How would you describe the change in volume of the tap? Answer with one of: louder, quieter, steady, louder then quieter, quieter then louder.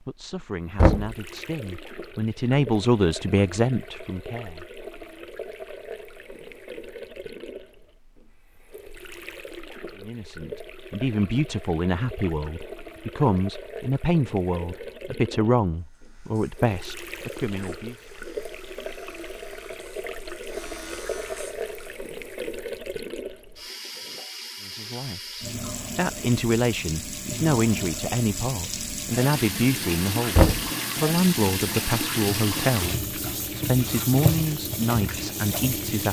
louder.